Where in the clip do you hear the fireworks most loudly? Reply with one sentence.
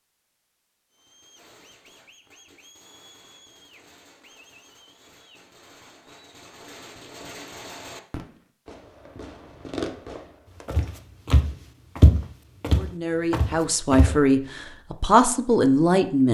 The loudest moment of the fireworks is at 10 seconds.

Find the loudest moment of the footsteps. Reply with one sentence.
The volume of the footsteps peaks at 12 seconds.